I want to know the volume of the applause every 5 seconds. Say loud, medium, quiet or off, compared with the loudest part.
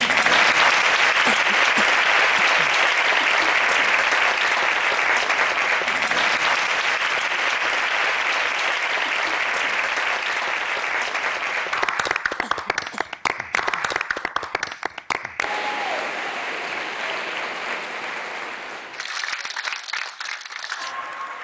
loud, loud, medium, medium, quiet.